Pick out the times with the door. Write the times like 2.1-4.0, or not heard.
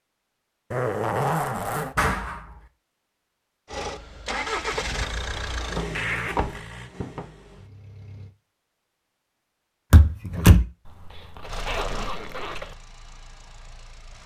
1.9-2.4, 5.8-7.2, 9.9-10.7.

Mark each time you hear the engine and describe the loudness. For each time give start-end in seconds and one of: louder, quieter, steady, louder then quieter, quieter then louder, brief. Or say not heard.
3.6-8.3 quieter
11.4-14.2 brief.